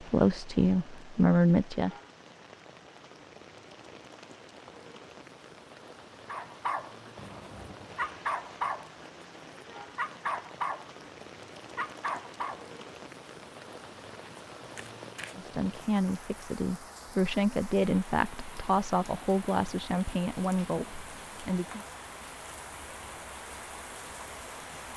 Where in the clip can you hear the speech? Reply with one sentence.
You can hear the speech from 0.1 to 1.9 s and from 15.3 to 21.9 s.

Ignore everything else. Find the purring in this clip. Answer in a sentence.
You can't hear the purring here.